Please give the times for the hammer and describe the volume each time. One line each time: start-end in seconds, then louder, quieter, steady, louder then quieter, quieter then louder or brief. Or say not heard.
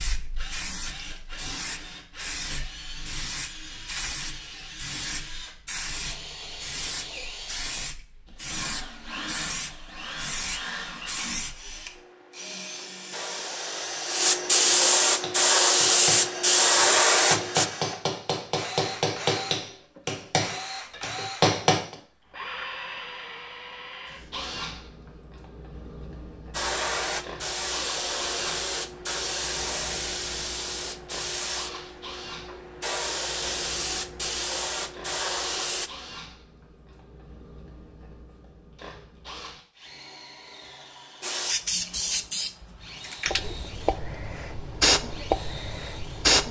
15.2-21.9 louder.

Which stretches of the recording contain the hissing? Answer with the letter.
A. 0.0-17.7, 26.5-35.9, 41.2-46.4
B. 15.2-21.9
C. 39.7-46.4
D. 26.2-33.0
A.